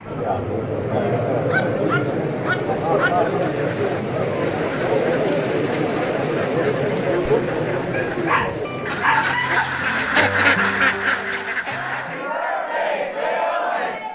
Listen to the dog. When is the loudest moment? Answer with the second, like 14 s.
9 s.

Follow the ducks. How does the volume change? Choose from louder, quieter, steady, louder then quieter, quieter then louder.
louder.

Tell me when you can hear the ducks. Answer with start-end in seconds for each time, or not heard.
3.5-12.2.